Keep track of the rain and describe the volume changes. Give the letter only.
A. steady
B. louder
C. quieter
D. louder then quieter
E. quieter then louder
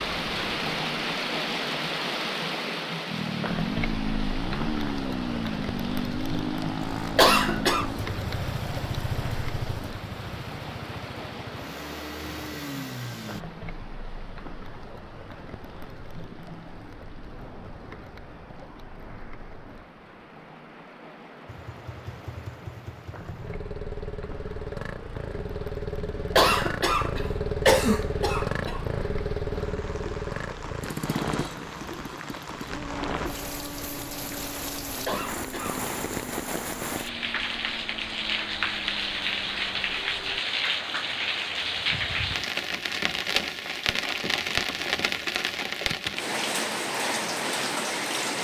E.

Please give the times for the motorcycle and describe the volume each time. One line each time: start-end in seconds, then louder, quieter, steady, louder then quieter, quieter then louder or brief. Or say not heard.
3.1-13.4 quieter
21.4-40.4 louder then quieter.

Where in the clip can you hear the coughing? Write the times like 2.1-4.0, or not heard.
7.2-7.8, 26.4-28.8, 35.0-35.9.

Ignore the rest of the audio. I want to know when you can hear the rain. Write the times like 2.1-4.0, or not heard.
0.0-48.4.